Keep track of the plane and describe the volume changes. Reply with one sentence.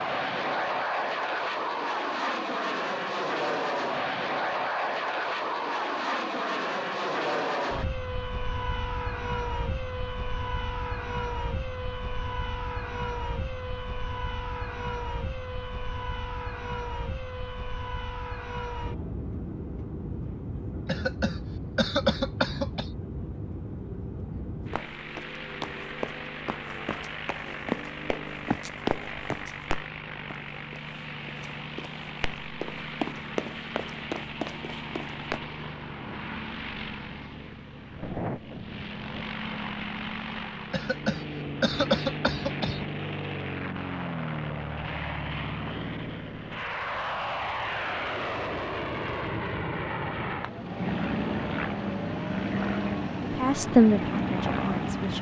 The volume of the plane goes down, then up.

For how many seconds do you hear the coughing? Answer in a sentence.
The coughing can be heard for 4 seconds in total.